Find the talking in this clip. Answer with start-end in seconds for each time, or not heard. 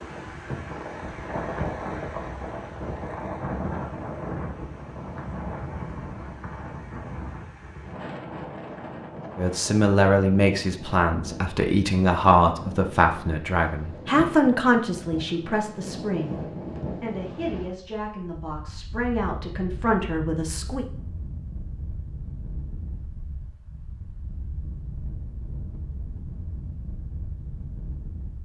9.3-20.9.